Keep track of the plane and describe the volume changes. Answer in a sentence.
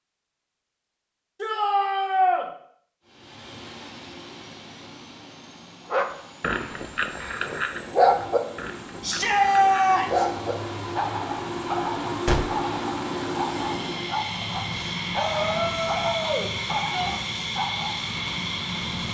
The loudness of the plane goes up.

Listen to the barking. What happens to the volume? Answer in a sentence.
The volume of the barking goes down.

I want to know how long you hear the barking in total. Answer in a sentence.
The barking can be heard for 12 seconds in total.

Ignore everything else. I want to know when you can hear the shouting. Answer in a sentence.
You can hear the shouting from 1.4 to 2.5 s, from 9.0 to 10.2 s and from 15.2 to 17.1 s.